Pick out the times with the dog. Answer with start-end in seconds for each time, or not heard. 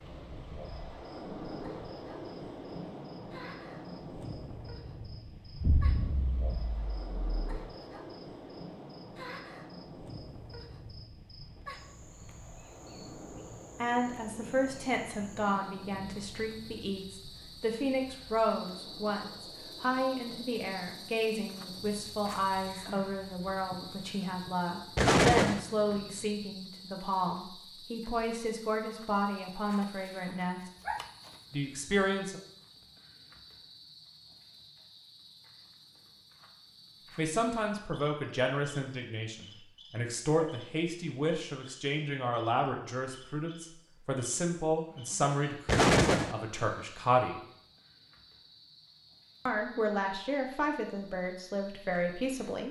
29.8-31.4.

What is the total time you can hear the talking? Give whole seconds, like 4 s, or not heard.
31 s.